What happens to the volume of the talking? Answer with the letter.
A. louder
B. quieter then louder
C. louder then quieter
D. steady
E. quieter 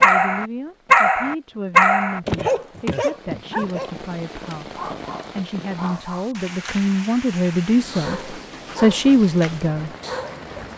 A.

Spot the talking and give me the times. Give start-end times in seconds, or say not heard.
0.0-9.9.